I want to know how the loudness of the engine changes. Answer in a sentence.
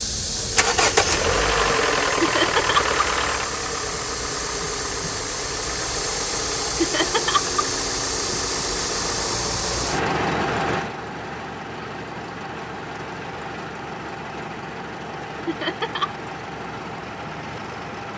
The loudness of the engine goes down.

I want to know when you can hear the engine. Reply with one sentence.
The engine can be heard from 0.0 to 18.1 s.